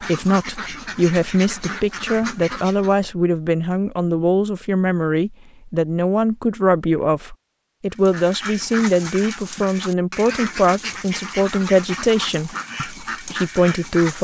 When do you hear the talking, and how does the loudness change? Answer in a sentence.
You can hear the talking from 0.0 to 14.1 s, at a steady volume.